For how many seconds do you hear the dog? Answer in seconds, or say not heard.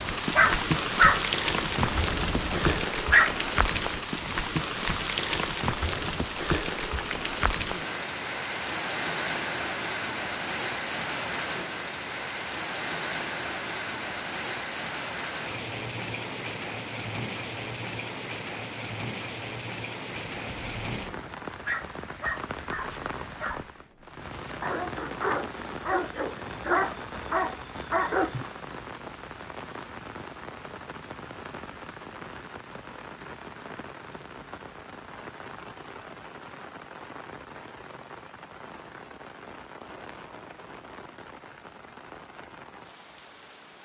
11 s.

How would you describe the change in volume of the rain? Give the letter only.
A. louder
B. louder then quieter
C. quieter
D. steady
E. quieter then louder
C.